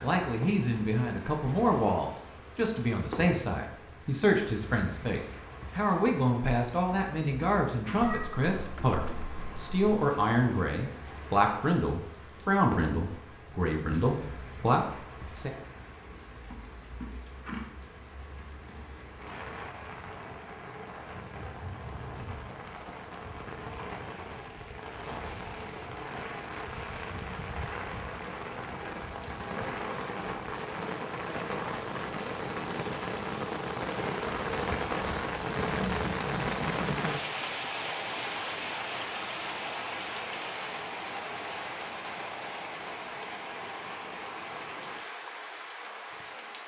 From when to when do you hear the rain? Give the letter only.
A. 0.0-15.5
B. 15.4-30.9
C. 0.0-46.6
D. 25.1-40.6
C.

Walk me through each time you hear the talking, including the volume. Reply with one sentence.
You can hear the talking from 0.0 to 15.5 s, at a steady volume.